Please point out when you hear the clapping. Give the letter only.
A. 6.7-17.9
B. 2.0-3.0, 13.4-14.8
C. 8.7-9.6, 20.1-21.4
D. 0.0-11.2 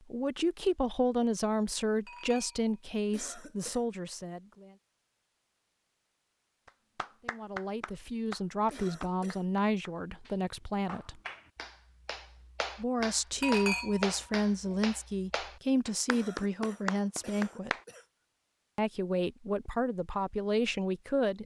A.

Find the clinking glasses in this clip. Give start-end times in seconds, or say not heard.
2.0-3.0, 13.4-14.8.